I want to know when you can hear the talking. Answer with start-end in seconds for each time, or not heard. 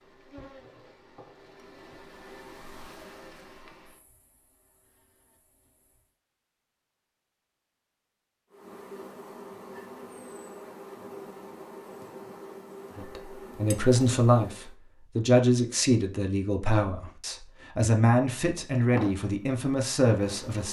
12.9-20.6.